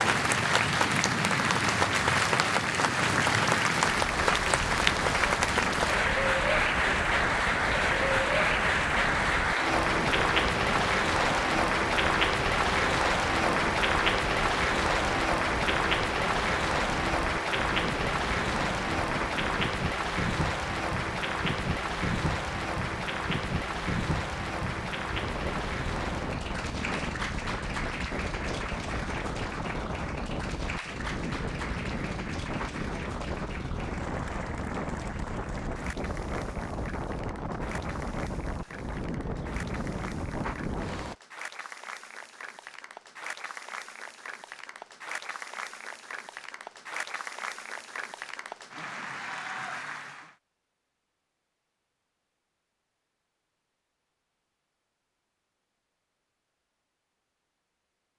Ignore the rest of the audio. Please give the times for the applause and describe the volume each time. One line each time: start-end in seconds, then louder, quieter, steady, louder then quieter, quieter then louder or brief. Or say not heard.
0.0-50.4 quieter.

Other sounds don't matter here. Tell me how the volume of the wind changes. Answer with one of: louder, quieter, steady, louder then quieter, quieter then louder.
steady.